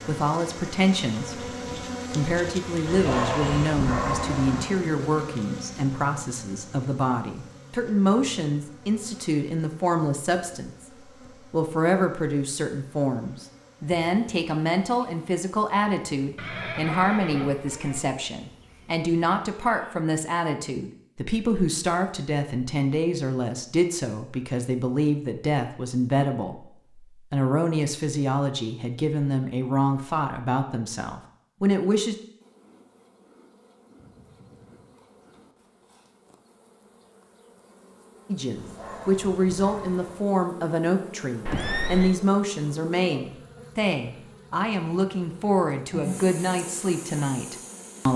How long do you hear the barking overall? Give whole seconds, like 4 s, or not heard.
4 s.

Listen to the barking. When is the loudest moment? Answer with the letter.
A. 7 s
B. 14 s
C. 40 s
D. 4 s
D.